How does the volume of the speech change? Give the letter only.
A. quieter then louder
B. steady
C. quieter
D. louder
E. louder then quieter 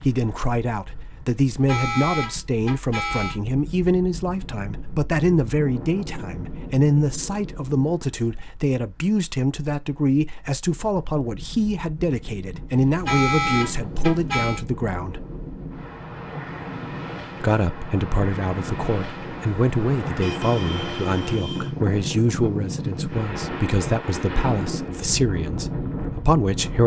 B.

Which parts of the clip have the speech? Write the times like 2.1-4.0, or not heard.
0.0-15.2, 17.4-26.8.